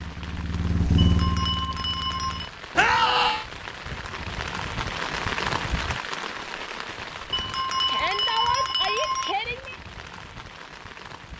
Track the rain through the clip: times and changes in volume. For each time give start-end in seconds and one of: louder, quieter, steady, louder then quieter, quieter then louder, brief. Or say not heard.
0.0-11.3 louder then quieter.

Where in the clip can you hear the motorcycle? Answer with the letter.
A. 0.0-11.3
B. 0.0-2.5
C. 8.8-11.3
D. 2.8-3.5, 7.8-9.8
B.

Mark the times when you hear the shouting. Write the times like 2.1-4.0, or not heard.
2.8-3.5, 7.8-9.8.